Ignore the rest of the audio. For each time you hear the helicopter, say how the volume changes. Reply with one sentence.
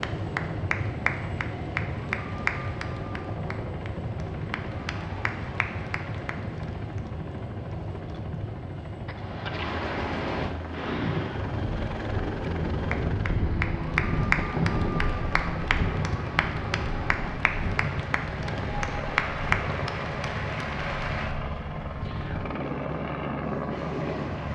The helicopter can be heard from 0.0 to 24.4 s, at a steady volume.